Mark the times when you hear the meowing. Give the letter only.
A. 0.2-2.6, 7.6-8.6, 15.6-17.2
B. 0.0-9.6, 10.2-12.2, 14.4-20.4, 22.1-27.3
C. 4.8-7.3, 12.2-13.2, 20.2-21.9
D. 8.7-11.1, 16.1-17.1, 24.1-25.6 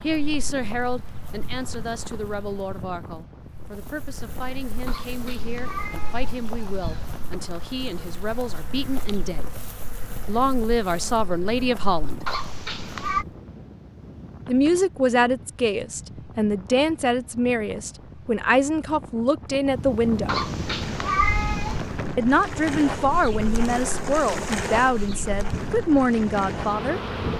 C.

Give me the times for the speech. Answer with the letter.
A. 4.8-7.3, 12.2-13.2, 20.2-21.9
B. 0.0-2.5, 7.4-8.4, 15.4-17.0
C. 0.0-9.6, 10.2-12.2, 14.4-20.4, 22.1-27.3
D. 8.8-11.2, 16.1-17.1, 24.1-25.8
C.